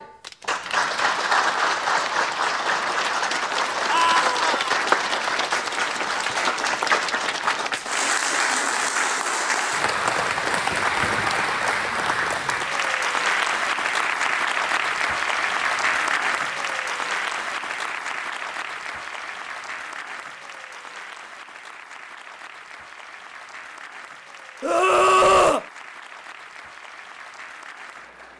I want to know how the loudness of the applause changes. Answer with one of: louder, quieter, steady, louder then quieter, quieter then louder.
quieter.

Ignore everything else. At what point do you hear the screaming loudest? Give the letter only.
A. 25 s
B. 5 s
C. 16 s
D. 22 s
A.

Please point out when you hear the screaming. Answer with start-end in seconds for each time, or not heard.
3.9-4.7, 24.6-25.6.